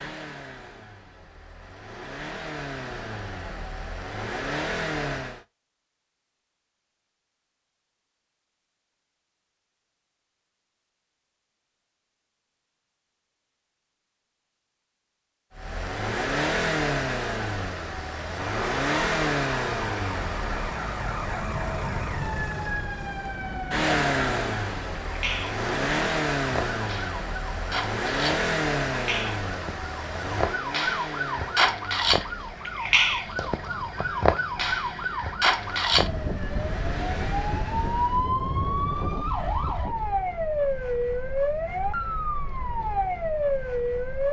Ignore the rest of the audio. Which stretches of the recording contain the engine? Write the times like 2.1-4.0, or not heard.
0.0-5.5, 15.5-38.3.